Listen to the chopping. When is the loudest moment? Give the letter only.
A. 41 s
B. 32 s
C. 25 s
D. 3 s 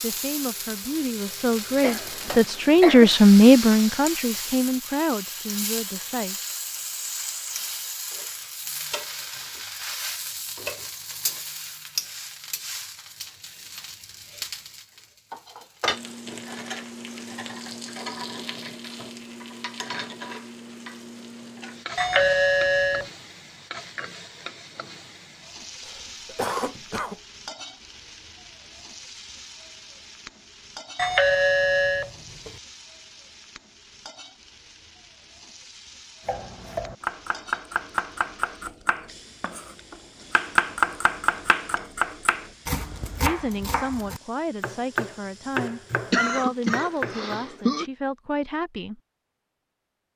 A.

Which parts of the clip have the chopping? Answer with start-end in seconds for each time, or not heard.
36.2-47.8.